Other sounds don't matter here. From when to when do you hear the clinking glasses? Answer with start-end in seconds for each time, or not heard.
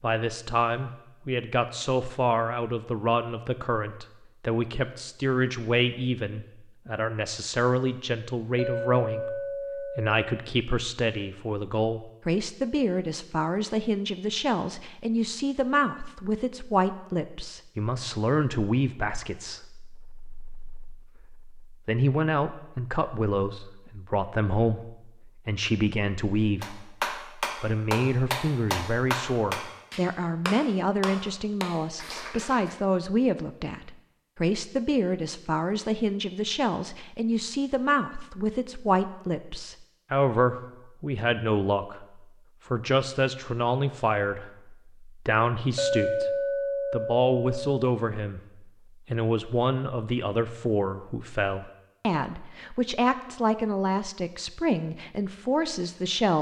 8.6-10.5, 45.8-47.9.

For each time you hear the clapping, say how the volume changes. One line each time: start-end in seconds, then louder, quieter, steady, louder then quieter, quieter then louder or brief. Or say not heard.
26.6-32.8 quieter.